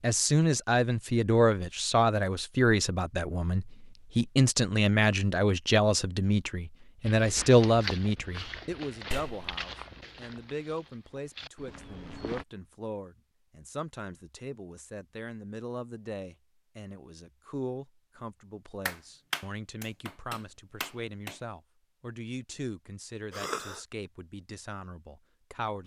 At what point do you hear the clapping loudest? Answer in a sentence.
The volume of the clapping peaks at 19 seconds.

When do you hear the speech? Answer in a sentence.
The speech can be heard from 0.0 to 25.8 s.